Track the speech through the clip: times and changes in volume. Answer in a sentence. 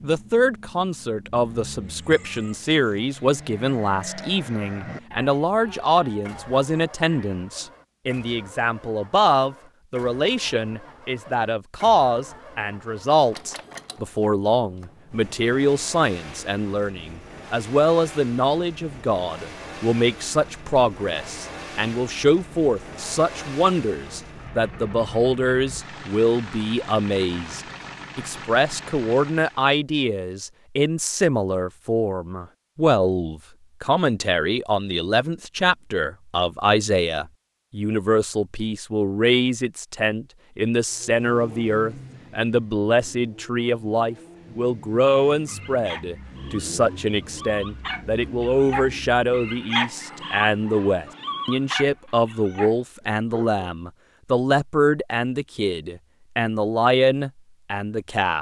The speech can be heard from 0.0 to 58.3 s, at a steady volume.